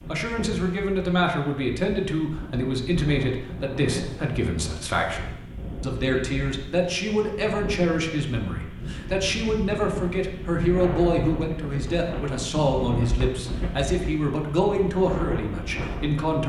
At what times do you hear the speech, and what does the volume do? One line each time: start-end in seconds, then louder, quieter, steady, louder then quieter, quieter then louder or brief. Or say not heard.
0.0-16.4 steady.